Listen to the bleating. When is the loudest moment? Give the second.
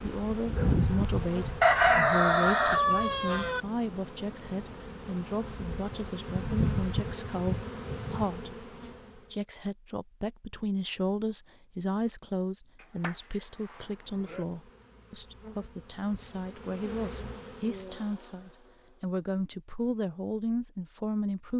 7 s.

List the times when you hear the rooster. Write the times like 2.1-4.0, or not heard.
1.6-3.6.